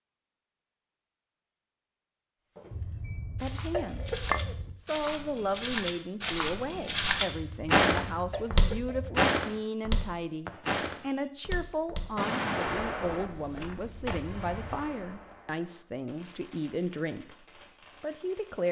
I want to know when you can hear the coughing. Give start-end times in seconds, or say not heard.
2.7-4.7, 7.3-9.3, 14.1-14.7.